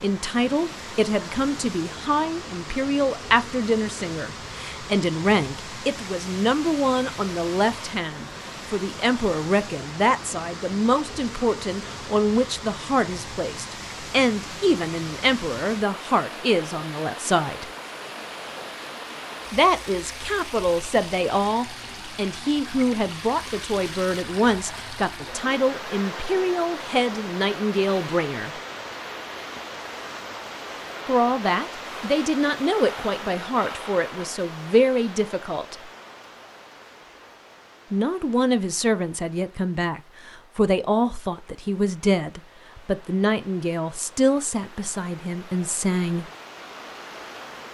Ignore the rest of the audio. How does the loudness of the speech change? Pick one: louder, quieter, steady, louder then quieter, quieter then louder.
steady.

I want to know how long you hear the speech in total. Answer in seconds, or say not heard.
40 s.